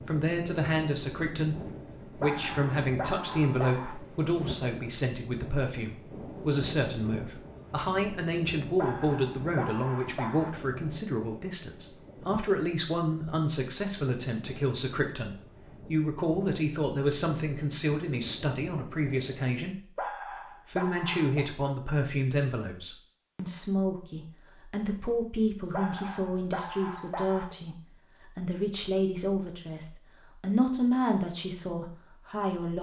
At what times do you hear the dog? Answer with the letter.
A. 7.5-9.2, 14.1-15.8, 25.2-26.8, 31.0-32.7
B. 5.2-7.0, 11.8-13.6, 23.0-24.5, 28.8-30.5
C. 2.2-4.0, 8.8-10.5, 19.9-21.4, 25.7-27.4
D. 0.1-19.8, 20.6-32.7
C.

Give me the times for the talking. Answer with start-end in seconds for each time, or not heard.
0.1-19.8, 20.6-32.7.